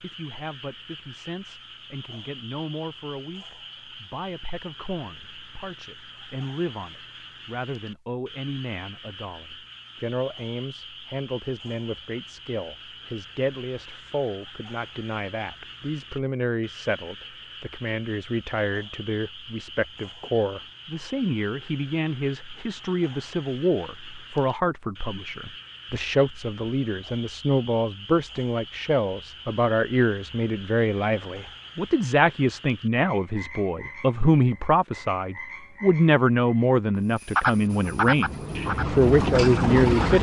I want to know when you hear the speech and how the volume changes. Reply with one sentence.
You can hear the speech from 0.0 to 40.1 s, getting louder.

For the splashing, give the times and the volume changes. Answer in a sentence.
You can't hear the splashing here.